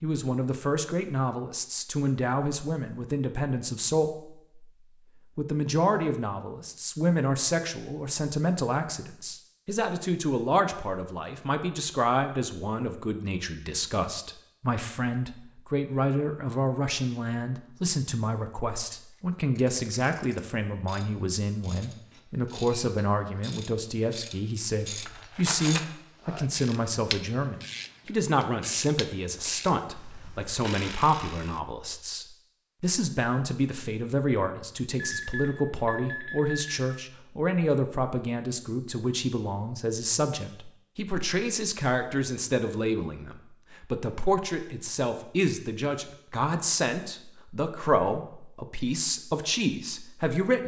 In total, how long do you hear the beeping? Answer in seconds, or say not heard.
2 s.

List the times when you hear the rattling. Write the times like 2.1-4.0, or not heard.
24.9-25.9.